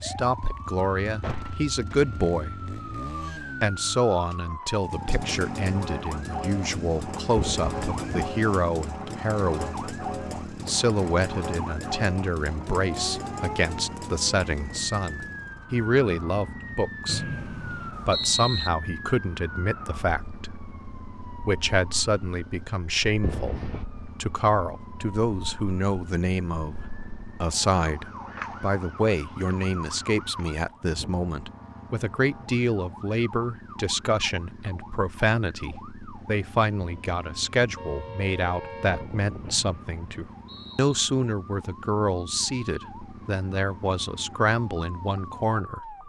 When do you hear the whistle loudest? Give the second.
18 s.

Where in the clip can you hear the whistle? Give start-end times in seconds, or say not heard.
17.1-18.7, 39.5-40.9.